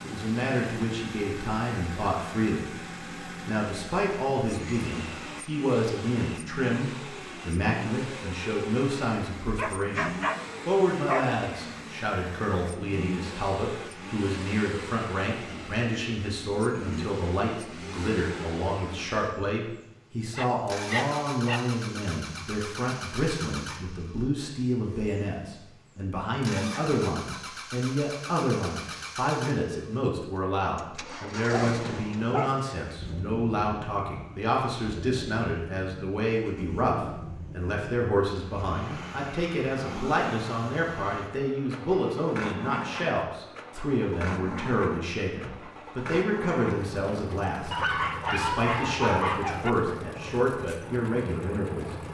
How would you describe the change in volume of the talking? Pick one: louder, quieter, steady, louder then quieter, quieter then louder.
steady.